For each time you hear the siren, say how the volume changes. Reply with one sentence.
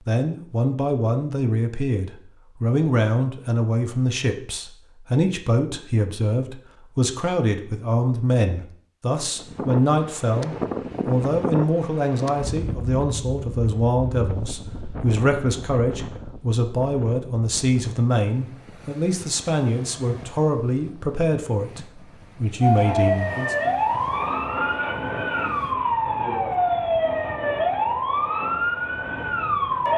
The siren can be heard from 22.6 to 29.9 s, at a steady volume.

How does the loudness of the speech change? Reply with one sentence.
The volume of the speech stays about the same.